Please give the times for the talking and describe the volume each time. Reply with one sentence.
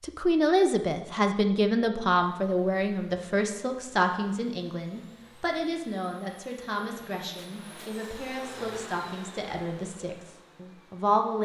The talking can be heard from 0.0 to 11.4 s, getting quieter.